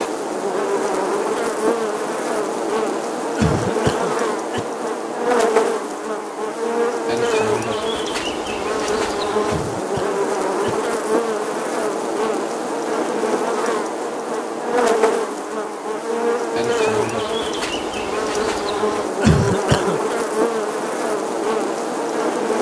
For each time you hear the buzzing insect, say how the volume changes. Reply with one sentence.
You can hear the buzzing insect from 0.0 to 22.5 s, at a steady volume.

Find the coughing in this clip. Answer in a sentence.
You can hear the coughing from 3.4 to 4.7 s, from 9.4 to 10.8 s and from 19.2 to 20.0 s.